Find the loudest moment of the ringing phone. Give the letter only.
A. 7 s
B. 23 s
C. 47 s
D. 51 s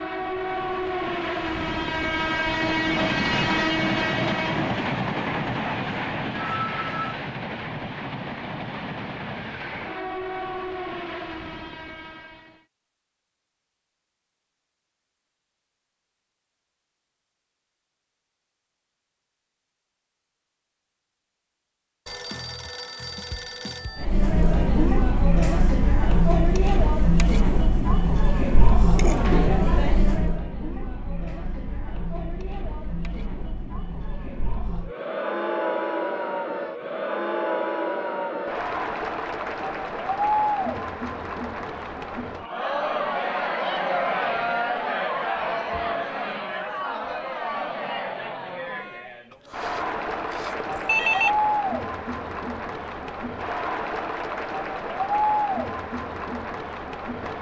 D.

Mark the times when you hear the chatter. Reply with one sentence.
The chatter can be heard from 23.9 to 57.3 s.